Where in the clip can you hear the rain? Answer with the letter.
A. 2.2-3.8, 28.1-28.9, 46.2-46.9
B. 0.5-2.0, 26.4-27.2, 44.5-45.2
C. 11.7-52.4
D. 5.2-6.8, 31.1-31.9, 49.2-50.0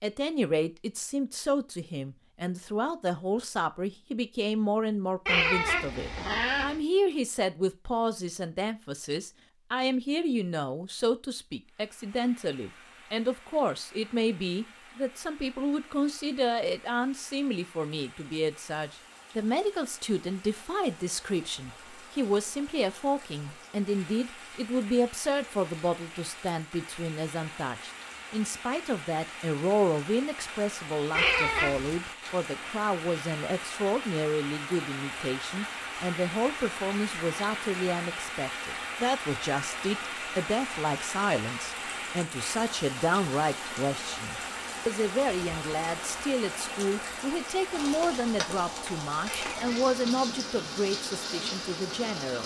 C.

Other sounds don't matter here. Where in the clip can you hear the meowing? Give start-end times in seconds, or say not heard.
5.2-6.8, 31.1-31.9, 49.2-50.0.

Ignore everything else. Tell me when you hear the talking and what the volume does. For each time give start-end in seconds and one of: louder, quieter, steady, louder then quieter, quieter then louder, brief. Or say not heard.
0.0-52.4 steady.